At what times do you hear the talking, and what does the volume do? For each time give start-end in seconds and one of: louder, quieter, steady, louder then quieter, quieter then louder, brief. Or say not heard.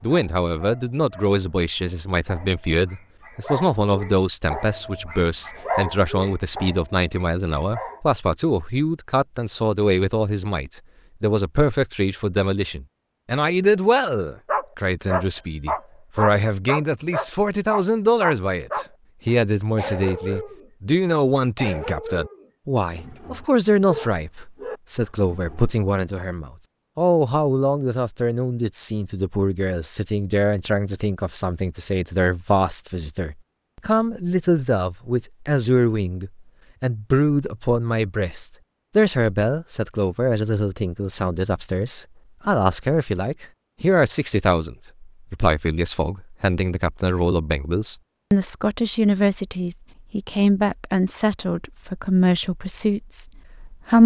0.0-54.0 steady.